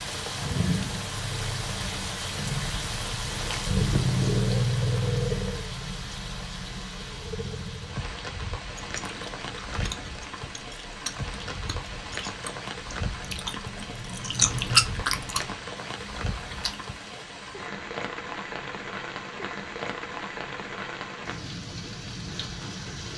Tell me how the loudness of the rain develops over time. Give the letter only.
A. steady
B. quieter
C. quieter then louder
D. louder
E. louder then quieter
B.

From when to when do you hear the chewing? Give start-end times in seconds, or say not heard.
8.8-17.2.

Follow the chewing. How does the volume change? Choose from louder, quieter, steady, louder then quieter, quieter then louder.
louder then quieter.